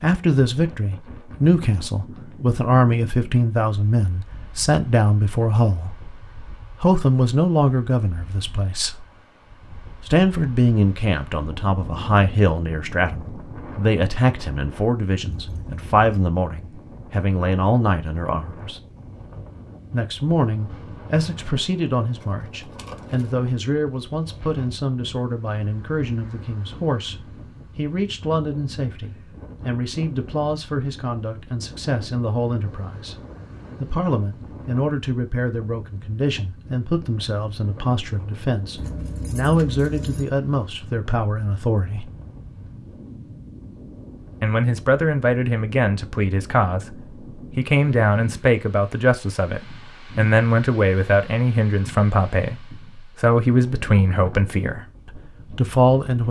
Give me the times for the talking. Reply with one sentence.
You can hear the talking from 0.0 to 6.1 s, from 6.8 to 9.1 s, from 10.0 to 18.8 s, from 19.9 to 33.1 s, from 33.8 to 42.1 s and from 44.4 to 56.2 s.